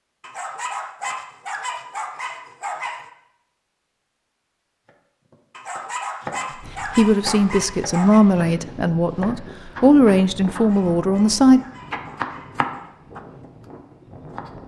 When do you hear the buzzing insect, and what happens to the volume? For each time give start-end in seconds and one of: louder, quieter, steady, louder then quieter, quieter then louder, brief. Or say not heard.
not heard.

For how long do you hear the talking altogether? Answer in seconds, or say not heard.
5 s.